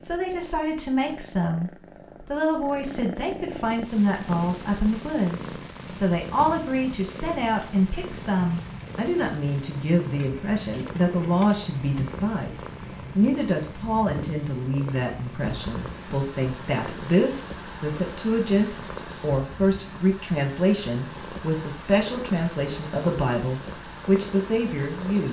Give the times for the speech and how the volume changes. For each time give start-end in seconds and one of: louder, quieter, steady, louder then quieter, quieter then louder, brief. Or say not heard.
0.0-25.2 steady.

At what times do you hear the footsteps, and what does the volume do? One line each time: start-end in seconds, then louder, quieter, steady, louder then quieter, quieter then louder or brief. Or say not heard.
not heard.